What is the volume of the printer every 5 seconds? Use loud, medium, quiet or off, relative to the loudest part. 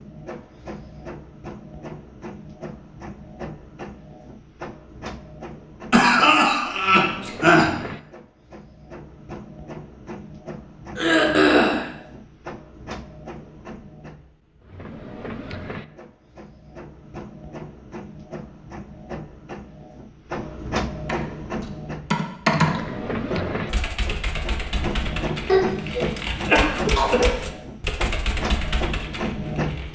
medium, medium, medium, medium, loud, loud.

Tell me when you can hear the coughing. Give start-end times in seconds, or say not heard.
5.9-7.7, 10.9-11.8, 25.4-27.4.